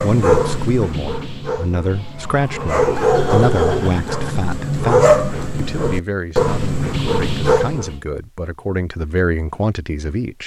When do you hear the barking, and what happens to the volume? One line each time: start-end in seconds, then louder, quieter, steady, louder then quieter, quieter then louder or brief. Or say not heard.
0.0-8.0 louder.